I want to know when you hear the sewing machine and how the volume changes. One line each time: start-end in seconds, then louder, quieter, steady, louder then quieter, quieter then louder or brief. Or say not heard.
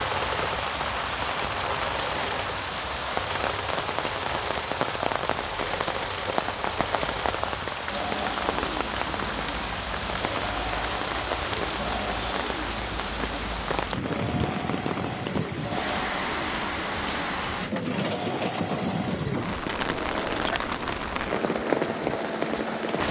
0.0-23.0 steady.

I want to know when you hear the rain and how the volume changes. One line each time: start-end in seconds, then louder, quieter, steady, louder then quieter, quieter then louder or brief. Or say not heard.
0.0-23.0 steady.